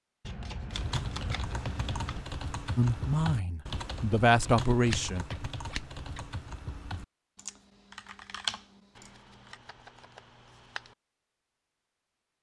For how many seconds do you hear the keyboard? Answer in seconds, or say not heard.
9 s.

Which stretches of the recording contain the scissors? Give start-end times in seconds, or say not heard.
0.2-2.2, 4.8-6.2, 8.9-10.9.